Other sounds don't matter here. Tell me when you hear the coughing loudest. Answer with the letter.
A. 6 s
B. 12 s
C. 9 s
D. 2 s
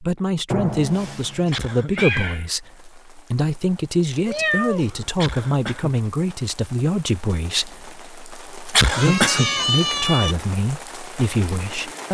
C.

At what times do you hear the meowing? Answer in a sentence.
You can hear the meowing from 0.5 to 2.5 s, from 4.2 to 5.0 s and from 8.8 to 10.3 s.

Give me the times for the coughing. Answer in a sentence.
You can hear the coughing from 1.4 to 2.2 s, from 5.1 to 6.0 s and from 8.7 to 9.5 s.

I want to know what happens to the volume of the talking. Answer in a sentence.
The volume of the talking stays about the same.